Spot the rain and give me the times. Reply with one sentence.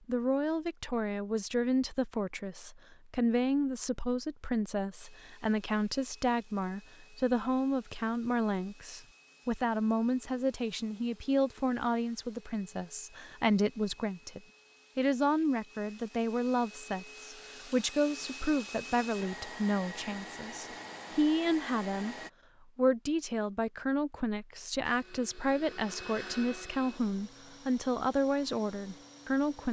The rain can't be heard in this clip.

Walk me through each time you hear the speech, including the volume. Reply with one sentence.
You can hear the speech from 0.1 to 22.1 s, at a steady volume; and from 22.8 to 29.6 s, at a steady volume.